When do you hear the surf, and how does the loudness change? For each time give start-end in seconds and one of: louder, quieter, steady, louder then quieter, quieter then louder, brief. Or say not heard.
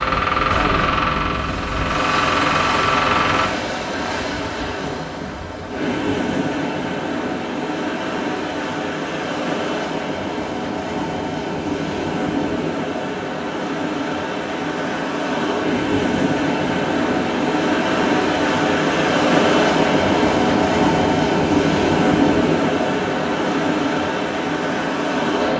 0.0-25.5 louder.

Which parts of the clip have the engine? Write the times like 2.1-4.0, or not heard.
0.0-3.5.